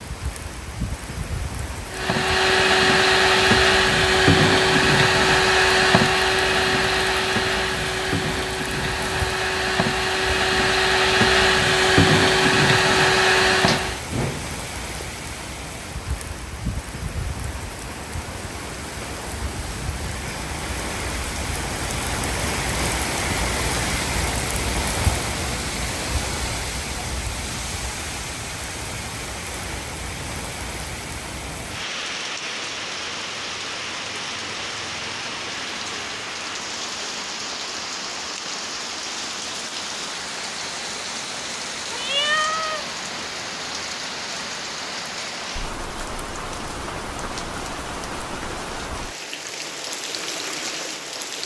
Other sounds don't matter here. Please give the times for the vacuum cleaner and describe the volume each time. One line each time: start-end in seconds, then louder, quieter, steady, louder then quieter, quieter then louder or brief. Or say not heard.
1.9-14.0 quieter then louder.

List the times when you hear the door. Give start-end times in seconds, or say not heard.
13.5-15.1.